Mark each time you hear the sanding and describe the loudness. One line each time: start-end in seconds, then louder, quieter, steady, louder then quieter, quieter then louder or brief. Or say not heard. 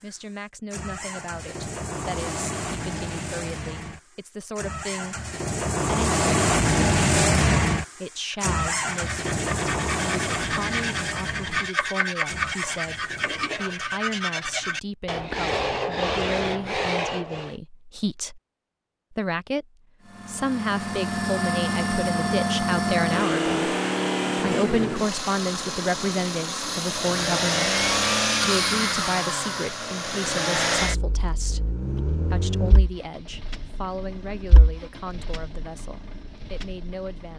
8.2-17.6 louder.